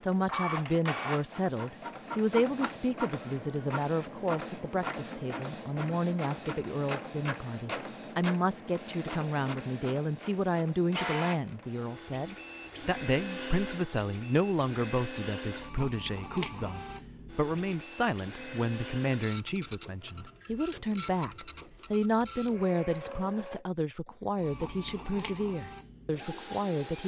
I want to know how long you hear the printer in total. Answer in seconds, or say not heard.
27 s.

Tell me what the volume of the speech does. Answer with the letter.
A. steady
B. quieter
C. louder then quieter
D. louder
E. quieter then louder
A.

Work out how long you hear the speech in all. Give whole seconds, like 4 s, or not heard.
27 s.